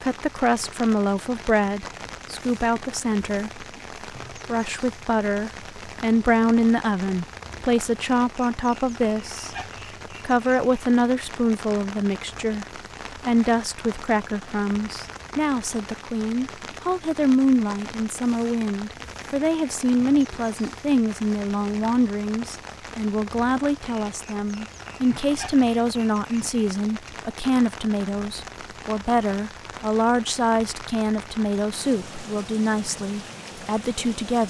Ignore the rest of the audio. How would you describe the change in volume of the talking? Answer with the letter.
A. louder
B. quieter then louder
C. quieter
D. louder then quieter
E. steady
E.